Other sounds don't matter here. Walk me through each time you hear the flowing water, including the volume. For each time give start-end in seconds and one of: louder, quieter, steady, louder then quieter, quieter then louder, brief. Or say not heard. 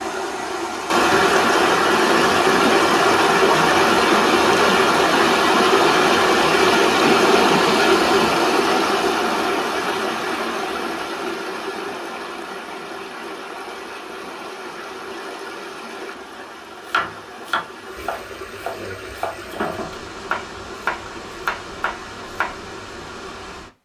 0.0-23.8 quieter.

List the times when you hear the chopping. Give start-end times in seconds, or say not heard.
16.9-22.6.